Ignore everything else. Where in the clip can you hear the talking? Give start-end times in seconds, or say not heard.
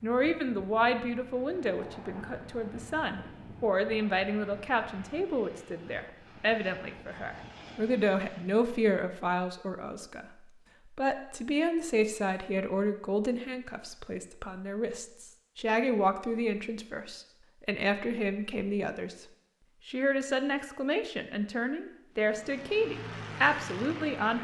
0.0-10.2, 10.9-19.2, 19.9-24.3.